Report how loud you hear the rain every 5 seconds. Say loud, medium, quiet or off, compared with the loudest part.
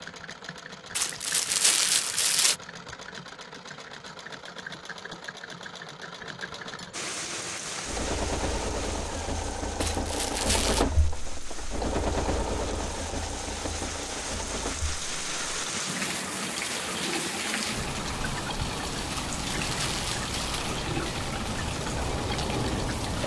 off, medium, medium, loud, loud.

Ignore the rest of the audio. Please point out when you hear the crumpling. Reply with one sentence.
You can hear the crumpling from 0.9 to 2.5 s, from 9.8 to 10.8 s and from 19.3 to 20.6 s.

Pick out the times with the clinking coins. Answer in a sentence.
You can't hear the clinking coins here.